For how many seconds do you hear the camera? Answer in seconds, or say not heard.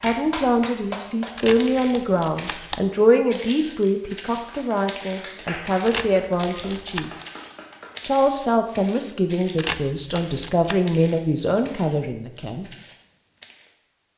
4 s.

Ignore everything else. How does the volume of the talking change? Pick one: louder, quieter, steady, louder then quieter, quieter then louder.
steady.